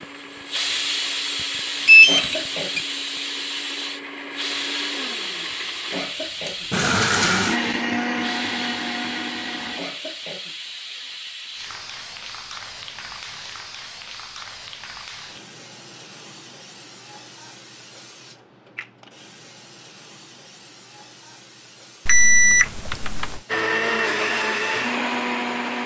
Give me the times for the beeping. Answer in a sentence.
The beeping can be heard from 1.9 to 2.8 s and from 22.1 to 23.4 s.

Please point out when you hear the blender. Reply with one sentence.
You can hear the blender from 0.0 to 9.8 s and from 23.4 to 25.8 s.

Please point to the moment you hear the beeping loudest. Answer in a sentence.
The volume of the beeping peaks at 2 seconds.